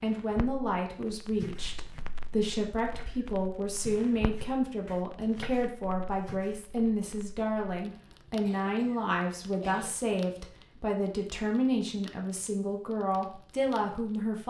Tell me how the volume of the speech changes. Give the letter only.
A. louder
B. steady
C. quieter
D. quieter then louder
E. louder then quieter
B.